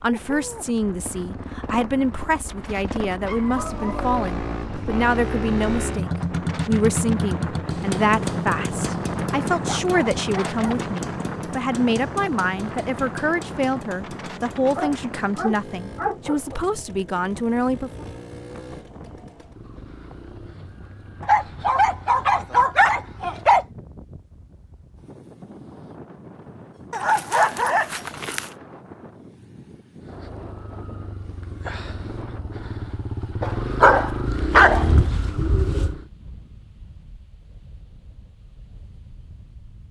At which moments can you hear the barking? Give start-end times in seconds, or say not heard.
3.2-4.3, 9.7-10.6, 14.8-16.6, 21.2-23.6, 26.9-28.5, 33.4-35.0.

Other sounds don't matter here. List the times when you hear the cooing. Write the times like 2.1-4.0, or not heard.
34.3-36.0.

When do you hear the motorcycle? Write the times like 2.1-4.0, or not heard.
0.0-23.4, 30.0-36.1.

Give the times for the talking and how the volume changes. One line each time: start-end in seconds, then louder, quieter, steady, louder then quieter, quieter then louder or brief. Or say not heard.
0.0-18.1 steady.